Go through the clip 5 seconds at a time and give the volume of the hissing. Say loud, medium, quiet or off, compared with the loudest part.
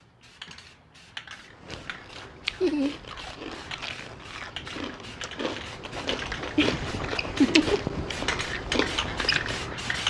medium, loud.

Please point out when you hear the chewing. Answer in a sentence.
The chewing can be heard from 1.4 to 9.8 s.